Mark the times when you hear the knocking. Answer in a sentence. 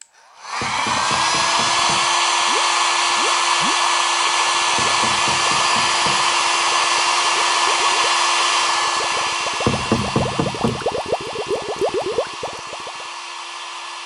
You can hear the knocking from 0.6 to 2.1 s, from 4.8 to 6.3 s and from 9.7 to 10.8 s.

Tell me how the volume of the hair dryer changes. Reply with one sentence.
The loudness of the hair dryer goes down.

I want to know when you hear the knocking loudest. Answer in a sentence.
The volume of the knocking peaks at 10 seconds.